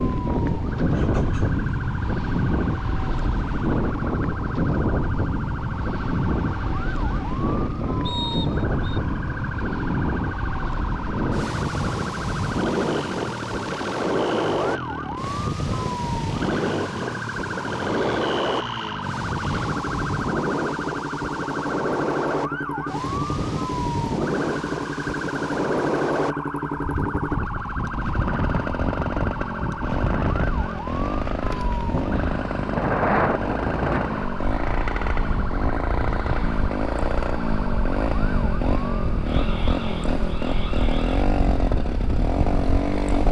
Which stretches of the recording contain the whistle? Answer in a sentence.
You can hear the whistle from 8.1 to 9.0 s.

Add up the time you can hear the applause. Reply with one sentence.
You can't hear the applause here.